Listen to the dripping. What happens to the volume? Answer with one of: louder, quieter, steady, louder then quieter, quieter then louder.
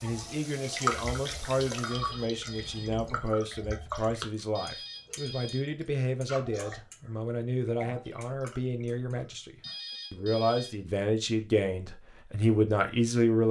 quieter.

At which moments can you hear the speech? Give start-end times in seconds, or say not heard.
0.0-13.4.